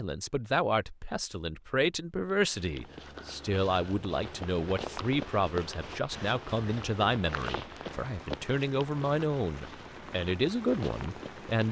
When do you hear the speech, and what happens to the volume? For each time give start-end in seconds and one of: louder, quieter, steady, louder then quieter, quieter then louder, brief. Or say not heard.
0.0-11.6 steady.